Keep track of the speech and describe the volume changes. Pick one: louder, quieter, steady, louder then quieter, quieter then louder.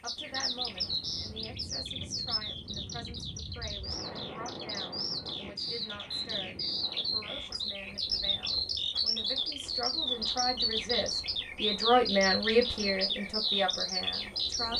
louder.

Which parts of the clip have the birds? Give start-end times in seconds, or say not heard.
0.1-14.7.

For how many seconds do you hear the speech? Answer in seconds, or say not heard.
15 s.